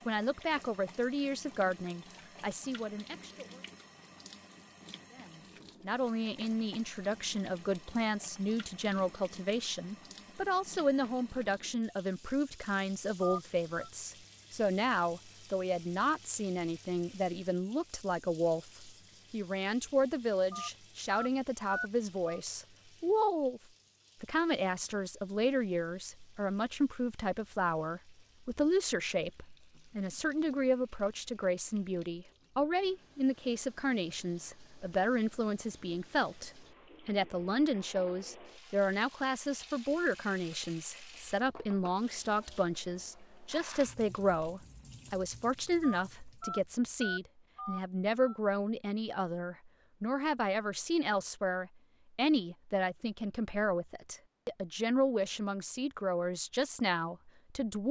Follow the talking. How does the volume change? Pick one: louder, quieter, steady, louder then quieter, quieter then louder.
steady.